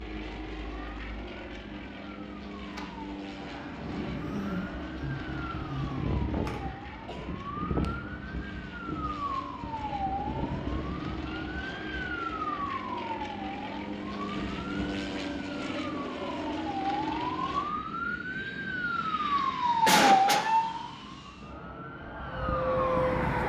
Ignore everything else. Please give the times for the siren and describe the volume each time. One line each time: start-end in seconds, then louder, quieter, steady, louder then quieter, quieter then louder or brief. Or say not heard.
0.1-23.4 louder.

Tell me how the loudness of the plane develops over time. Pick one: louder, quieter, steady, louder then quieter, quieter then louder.
louder then quieter.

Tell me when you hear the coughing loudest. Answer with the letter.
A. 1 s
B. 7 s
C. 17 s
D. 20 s
D.